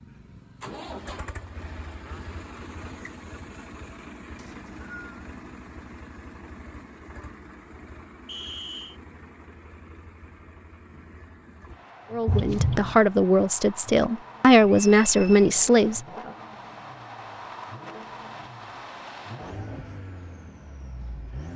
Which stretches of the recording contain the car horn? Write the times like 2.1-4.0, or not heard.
12.2-13.0.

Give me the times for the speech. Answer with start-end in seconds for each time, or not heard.
12.1-16.0.